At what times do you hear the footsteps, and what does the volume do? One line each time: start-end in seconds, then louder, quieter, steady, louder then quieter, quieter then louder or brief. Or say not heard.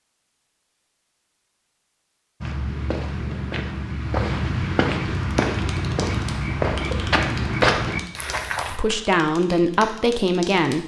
2.4-8.8 louder.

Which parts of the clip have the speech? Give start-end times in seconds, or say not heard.
8.7-10.8.